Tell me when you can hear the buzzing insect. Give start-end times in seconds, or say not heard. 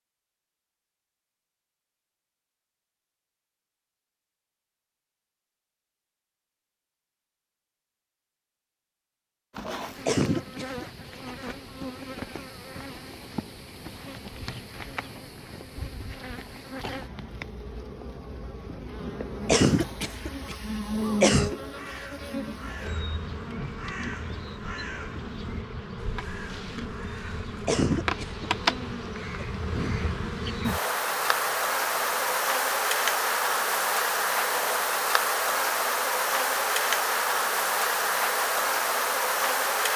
9.5-39.9.